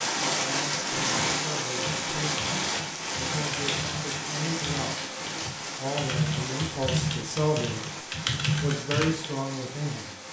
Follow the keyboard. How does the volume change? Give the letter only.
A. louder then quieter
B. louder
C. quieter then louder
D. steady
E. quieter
B.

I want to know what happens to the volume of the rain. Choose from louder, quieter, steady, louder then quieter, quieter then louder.
quieter.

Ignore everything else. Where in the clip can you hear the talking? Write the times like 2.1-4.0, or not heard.
0.1-2.5, 3.2-5.0, 5.8-8.0, 8.6-10.2.